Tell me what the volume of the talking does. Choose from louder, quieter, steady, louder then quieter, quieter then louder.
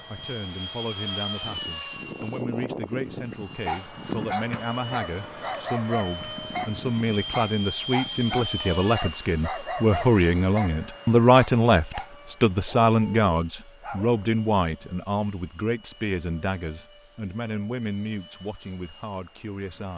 louder then quieter.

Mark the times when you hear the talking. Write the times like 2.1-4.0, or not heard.
0.1-19.9.